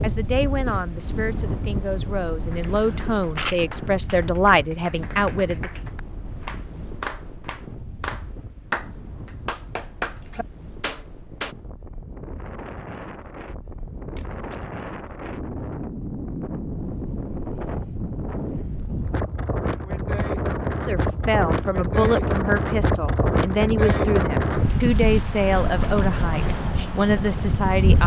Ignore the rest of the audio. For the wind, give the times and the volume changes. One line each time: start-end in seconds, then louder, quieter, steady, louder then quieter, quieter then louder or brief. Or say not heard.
0.0-28.0 quieter then louder.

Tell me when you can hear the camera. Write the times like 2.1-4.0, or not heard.
2.6-3.6, 14.2-14.7.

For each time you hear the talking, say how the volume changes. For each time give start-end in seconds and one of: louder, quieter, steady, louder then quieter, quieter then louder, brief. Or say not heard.
0.0-5.7 louder
20.9-28.0 steady.